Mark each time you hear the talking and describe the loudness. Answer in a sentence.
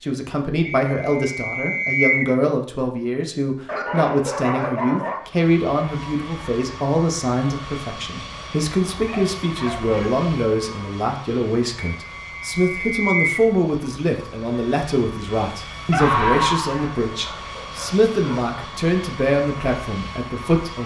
You can hear the talking from 0.0 to 20.8 s, at a steady volume.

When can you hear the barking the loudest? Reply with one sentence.
The volume of the barking peaks at 16 seconds.